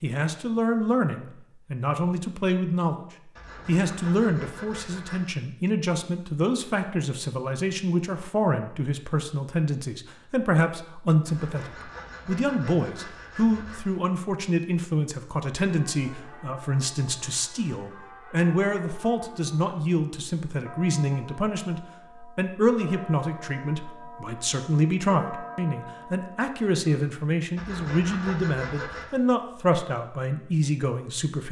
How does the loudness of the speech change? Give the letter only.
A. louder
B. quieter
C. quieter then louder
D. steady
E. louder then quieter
D.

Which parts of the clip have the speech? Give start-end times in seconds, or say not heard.
0.0-3.0, 3.6-31.4.